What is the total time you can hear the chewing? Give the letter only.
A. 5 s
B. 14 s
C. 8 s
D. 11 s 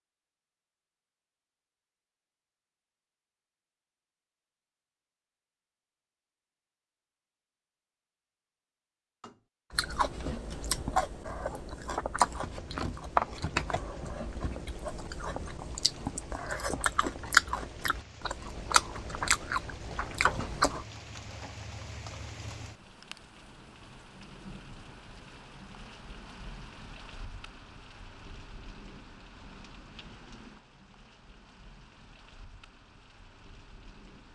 D.